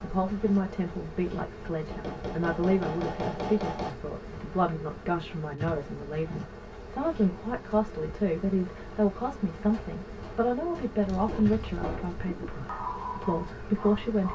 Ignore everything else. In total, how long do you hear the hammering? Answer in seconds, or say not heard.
5 s.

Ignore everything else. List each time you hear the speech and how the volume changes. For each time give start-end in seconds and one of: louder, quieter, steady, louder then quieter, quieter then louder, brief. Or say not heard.
0.0-14.3 steady.